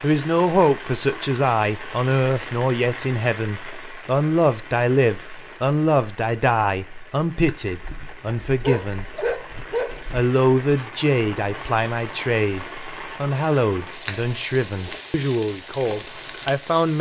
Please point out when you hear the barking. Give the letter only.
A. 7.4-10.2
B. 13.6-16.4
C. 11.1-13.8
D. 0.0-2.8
A.